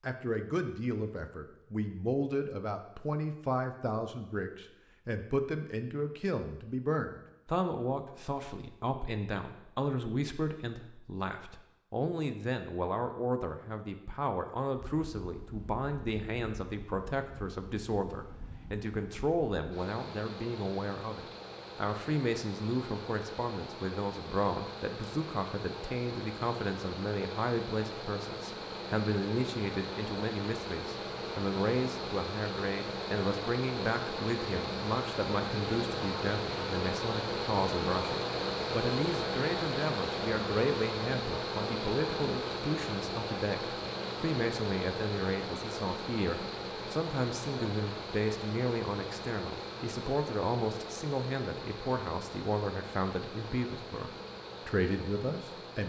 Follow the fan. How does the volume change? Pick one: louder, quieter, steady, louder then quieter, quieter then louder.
louder then quieter.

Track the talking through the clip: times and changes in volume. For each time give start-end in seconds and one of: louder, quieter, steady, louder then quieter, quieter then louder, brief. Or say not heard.
0.0-55.8 steady.